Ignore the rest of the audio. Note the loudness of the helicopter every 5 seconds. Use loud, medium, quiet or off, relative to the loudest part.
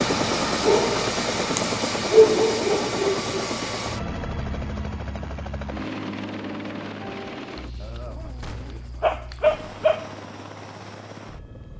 loud, medium, quiet.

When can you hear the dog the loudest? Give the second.
2 s.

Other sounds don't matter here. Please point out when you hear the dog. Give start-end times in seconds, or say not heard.
0.7-3.5, 7.8-10.2.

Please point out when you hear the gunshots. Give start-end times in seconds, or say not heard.
8.4-8.8.